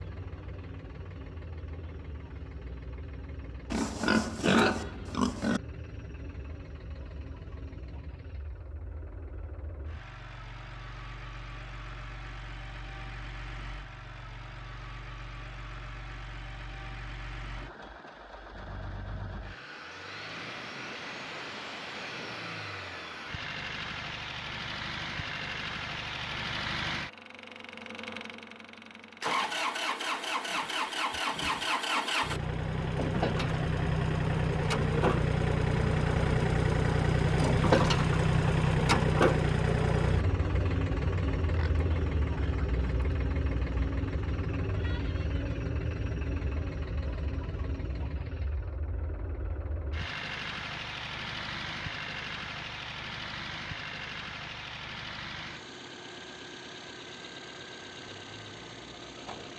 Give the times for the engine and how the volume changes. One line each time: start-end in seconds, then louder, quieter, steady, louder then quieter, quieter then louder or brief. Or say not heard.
0.0-59.5 louder then quieter.